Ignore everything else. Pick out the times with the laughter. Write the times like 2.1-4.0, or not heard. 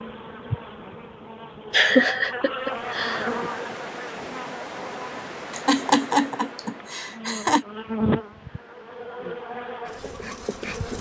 1.7-3.2, 5.5-7.7.